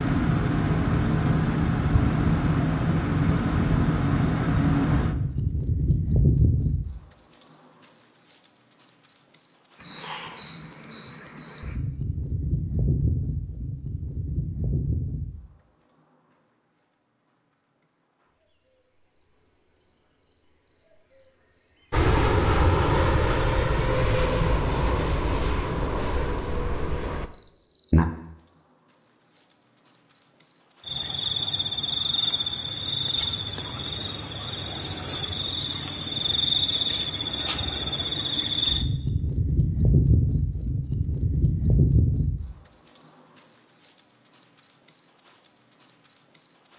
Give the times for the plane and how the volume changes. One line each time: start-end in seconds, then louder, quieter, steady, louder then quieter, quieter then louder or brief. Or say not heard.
21.9-27.3 quieter.